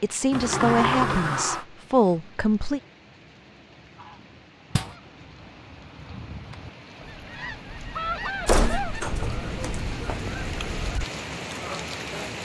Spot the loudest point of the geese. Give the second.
8 s.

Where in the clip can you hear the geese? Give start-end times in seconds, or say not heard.
4.0-12.3.